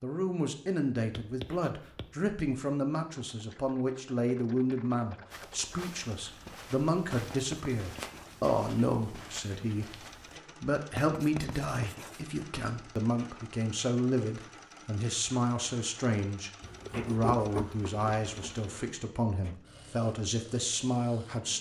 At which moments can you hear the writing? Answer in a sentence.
The writing can be heard from 1.1 to 2.1 s, from 7.1 to 8.4 s, from 10.9 to 12.2 s and from 16.6 to 18.9 s.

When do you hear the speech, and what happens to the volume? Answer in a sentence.
The speech can be heard from 0.0 to 21.5 s, at a steady volume.